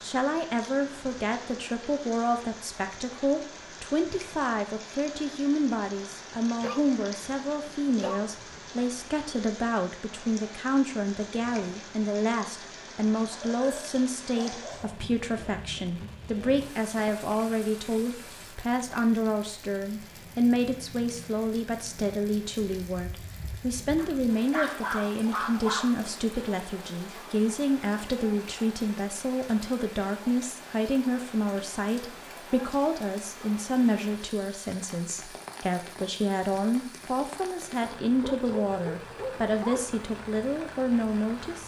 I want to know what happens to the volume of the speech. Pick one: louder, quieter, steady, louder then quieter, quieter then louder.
steady.